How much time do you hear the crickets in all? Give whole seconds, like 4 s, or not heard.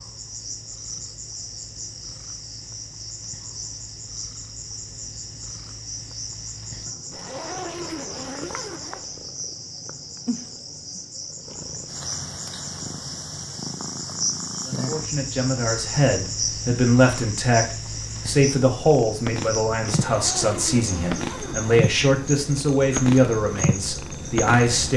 25 s.